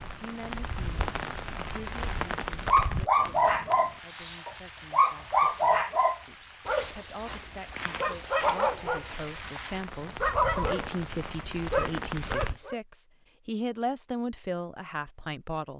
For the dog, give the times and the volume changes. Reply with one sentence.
You can hear the dog from 2.6 to 12.8 s, getting quieter.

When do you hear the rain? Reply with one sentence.
You can hear the rain from 0.0 to 12.6 s.